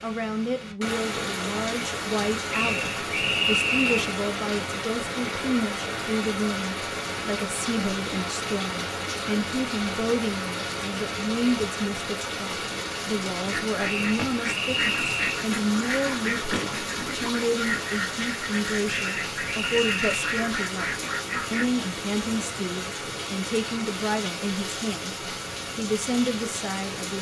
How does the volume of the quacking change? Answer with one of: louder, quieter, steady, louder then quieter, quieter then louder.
steady.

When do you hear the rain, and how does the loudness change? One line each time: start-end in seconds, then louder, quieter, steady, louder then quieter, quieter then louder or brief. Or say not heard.
0.0-27.1 steady.